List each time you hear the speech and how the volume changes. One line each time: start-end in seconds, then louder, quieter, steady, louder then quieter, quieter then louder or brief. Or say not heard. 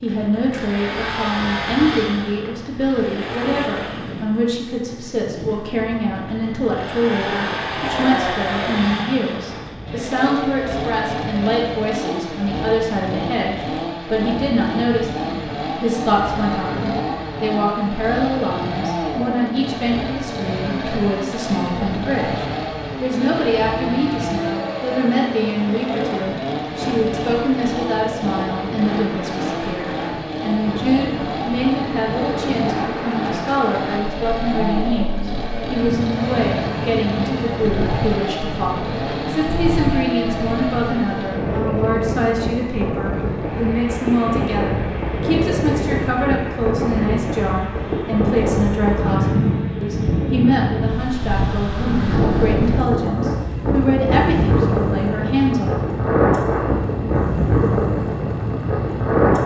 0.0-55.7 steady.